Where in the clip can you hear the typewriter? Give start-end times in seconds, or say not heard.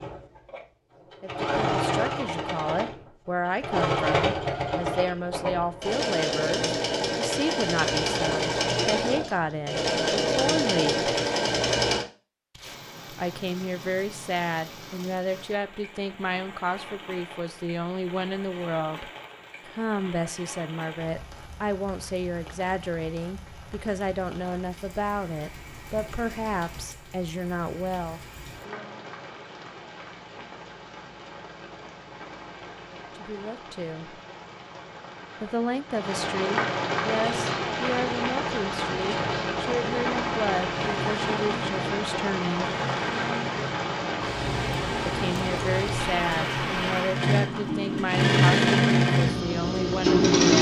not heard.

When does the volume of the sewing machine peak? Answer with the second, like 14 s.
49 s.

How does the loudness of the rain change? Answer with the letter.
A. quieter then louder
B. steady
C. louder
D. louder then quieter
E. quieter
C.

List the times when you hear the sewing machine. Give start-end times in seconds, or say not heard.
0.0-12.1, 37.1-50.5.